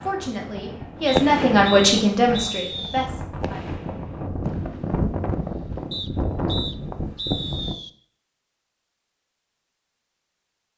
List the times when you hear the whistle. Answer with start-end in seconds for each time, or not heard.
1.1-3.1, 5.9-7.9.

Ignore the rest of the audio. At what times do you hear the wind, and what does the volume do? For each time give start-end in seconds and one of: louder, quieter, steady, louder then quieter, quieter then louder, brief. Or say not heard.
0.0-7.8 louder.